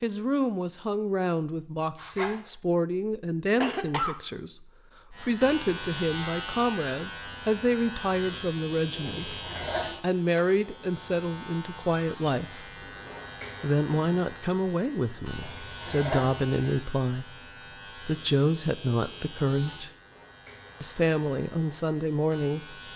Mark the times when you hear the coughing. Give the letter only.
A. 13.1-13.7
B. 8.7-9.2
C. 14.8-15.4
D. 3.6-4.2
D.